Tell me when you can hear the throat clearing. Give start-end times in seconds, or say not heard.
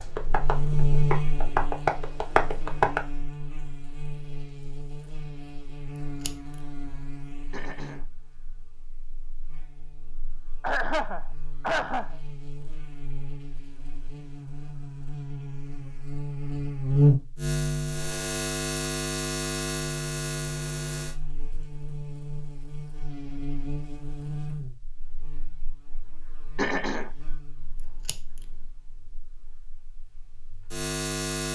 7.5-8.1, 10.6-12.2, 26.6-27.1.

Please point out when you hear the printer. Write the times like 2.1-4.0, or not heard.
not heard.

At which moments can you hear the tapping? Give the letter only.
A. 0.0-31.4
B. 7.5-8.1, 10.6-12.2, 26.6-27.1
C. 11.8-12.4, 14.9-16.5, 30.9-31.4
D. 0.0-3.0
D.